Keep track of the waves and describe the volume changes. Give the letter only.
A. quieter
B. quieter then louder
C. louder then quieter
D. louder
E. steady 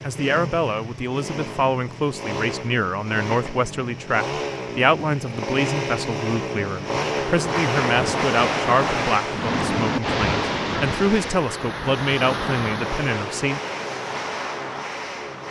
A.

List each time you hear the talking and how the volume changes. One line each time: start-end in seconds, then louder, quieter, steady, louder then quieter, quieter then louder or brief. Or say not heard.
0.0-13.6 steady.